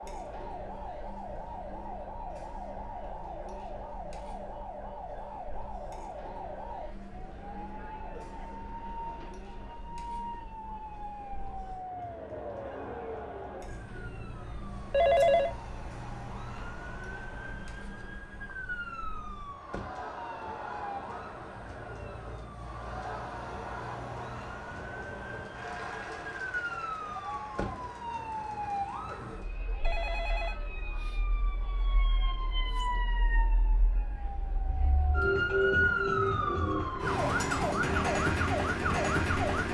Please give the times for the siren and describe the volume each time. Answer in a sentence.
The siren can be heard from 0.0 to 39.7 s, getting louder.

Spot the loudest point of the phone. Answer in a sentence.
The volume of the phone peaks at 15 seconds.